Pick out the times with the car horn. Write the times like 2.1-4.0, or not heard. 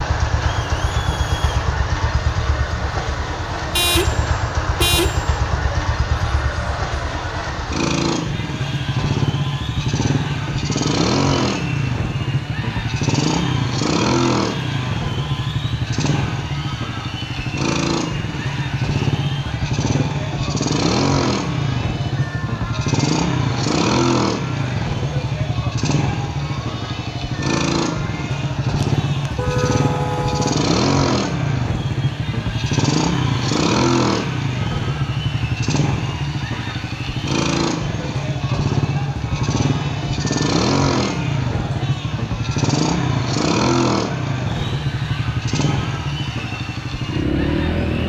3.8-5.3, 28.8-30.6.